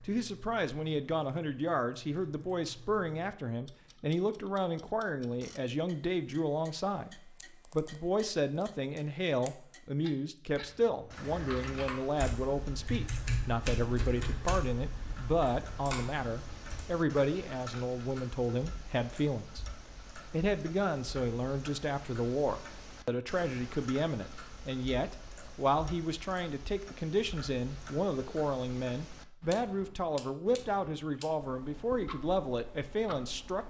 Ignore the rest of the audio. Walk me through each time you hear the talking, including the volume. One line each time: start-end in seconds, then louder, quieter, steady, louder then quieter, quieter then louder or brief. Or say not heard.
0.1-33.6 steady.